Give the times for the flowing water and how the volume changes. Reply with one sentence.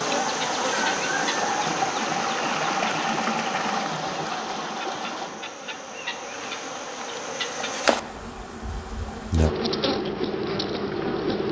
You can hear the flowing water from 0.0 to 11.4 s, getting quieter.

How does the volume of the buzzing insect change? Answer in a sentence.
The volume of the buzzing insect goes down, then up.